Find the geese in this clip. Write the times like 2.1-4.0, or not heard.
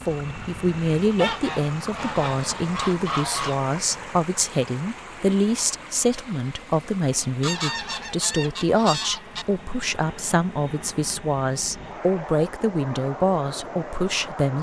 1.1-3.6, 7.4-9.4.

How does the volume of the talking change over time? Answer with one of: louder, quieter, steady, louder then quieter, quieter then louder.
steady.